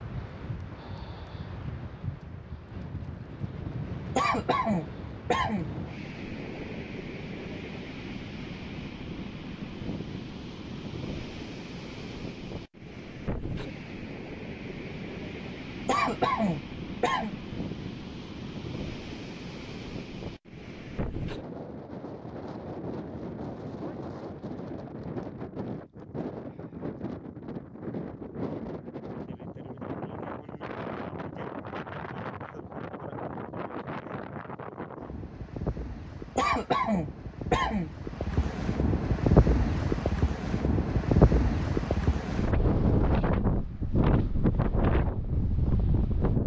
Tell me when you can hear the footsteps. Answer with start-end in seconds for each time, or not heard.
not heard.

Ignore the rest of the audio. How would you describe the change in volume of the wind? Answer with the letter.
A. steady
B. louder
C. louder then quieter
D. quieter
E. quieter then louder
B.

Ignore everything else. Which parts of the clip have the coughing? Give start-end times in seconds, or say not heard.
4.2-5.7, 15.8-17.4, 36.4-37.9.